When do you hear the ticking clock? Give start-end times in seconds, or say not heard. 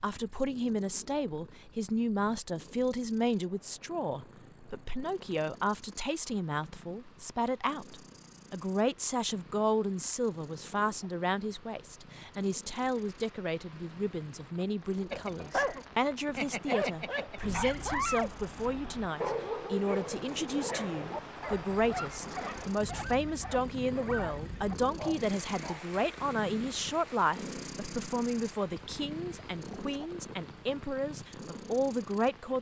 not heard.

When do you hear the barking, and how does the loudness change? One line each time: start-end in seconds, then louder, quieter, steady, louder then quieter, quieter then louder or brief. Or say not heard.
15.1-25.9 quieter.